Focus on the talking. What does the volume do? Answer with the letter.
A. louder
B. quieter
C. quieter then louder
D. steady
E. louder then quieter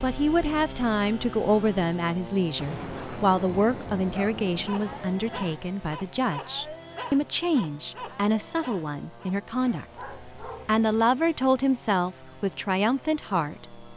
D.